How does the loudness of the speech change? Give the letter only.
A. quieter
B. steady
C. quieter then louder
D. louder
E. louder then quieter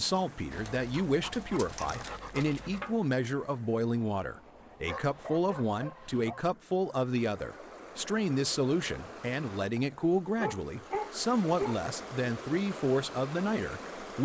B.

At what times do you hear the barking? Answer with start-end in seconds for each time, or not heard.
0.5-3.0, 4.8-6.5, 10.0-11.8.